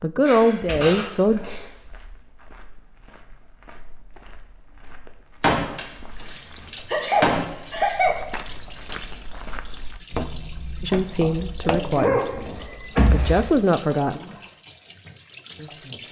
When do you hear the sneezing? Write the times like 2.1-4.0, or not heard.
0.2-1.7, 6.8-8.2, 11.2-13.9.